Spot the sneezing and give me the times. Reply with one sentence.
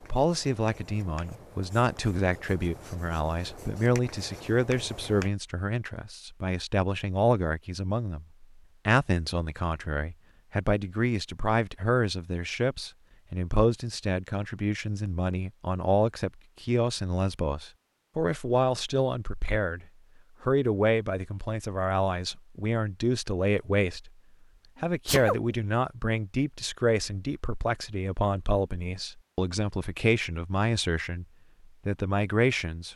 You can hear the sneezing from 25.1 to 25.6 s.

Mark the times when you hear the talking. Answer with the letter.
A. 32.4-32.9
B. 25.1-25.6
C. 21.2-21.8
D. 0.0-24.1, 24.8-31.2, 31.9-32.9
D.